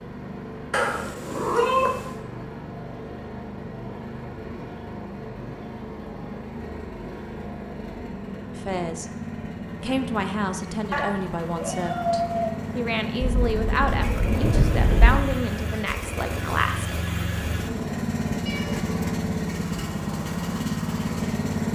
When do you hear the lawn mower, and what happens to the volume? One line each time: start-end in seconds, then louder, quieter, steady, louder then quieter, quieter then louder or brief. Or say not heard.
0.0-21.6 louder.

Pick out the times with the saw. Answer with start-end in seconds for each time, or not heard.
not heard.